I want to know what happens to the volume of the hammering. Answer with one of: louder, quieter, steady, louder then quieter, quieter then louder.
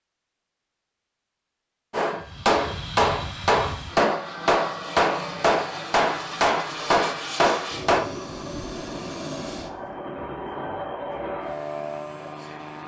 steady.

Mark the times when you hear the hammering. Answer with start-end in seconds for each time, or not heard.
1.9-8.1.